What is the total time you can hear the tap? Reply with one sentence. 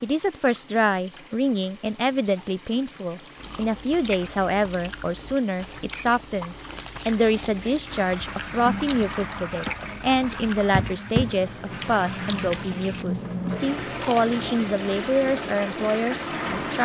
The tap can be heard for 17 seconds in total.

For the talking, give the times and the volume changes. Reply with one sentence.
The talking can be heard from 0.0 to 16.7 s, at a steady volume.